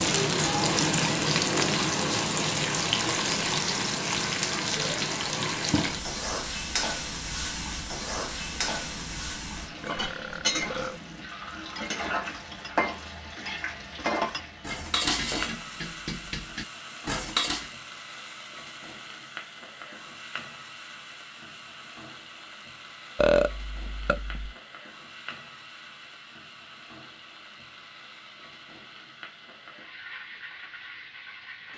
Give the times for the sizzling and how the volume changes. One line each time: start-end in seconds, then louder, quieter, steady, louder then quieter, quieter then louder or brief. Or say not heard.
0.0-31.7 quieter.